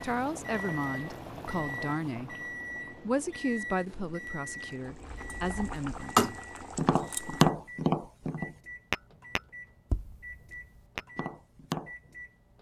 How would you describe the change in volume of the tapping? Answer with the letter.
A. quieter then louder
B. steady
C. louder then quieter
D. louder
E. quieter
E.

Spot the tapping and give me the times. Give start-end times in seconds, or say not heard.
5.1-11.9.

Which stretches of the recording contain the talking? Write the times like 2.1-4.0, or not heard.
0.0-2.4, 3.0-6.3.